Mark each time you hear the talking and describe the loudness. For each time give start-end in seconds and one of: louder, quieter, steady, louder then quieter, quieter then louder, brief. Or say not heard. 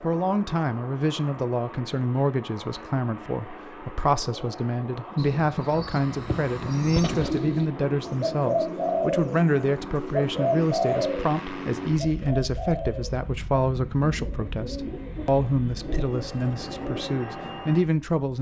0.0-18.3 steady.